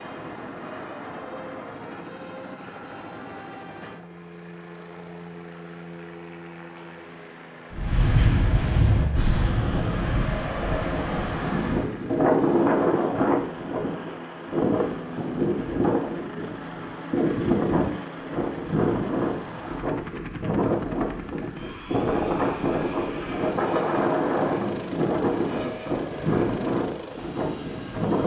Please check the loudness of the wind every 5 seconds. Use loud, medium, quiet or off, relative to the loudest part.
off, loud, loud, loud, loud, loud.